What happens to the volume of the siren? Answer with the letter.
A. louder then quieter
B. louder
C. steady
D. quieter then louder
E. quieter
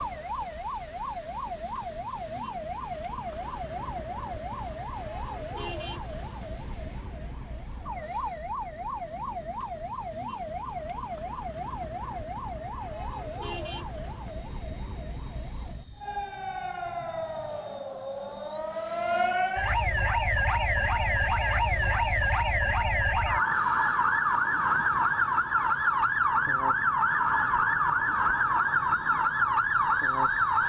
B.